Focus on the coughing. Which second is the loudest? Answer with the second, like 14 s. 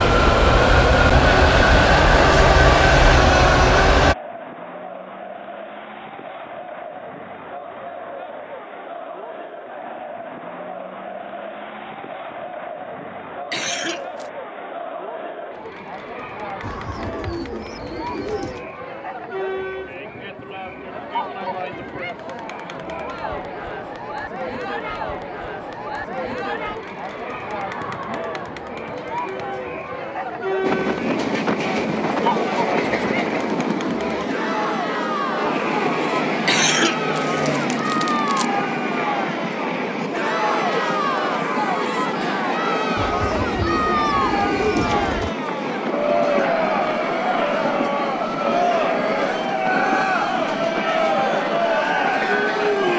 37 s.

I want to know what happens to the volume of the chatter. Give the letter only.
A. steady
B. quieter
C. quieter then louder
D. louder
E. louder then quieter
D.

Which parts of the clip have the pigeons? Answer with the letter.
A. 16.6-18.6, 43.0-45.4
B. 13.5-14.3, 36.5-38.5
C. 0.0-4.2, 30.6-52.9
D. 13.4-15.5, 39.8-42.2
A.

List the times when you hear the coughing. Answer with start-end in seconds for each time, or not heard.
13.5-14.3, 36.5-38.5.